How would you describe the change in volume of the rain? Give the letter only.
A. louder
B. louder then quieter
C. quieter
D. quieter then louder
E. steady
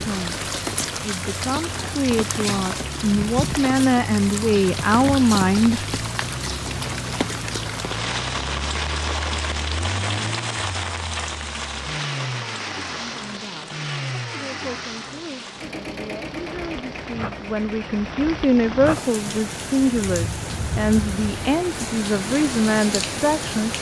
D.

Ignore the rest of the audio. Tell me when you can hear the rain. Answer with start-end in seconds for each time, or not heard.
0.0-23.7.